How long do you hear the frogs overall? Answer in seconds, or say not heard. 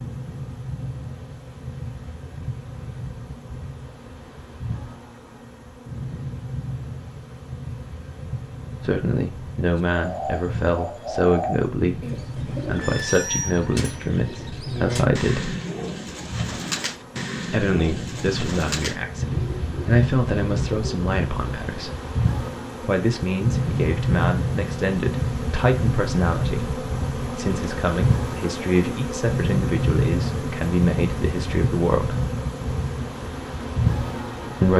not heard.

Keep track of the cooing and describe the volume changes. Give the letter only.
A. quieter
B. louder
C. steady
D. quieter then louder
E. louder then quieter
C.